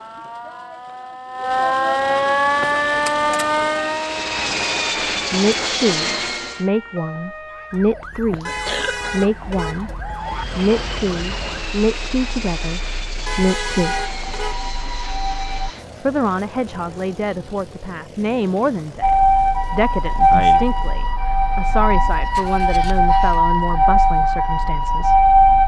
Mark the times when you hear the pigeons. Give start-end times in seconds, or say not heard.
not heard.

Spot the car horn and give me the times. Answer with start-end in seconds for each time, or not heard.
8.4-10.4, 13.2-14.6.